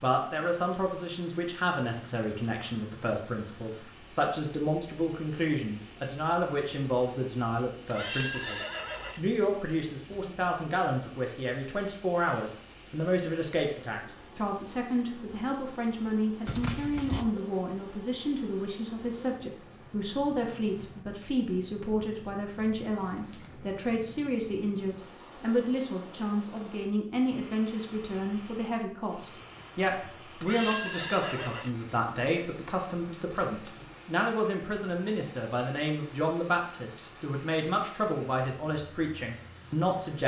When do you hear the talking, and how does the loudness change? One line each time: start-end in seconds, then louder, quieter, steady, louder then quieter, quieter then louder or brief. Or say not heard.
0.0-40.2 steady.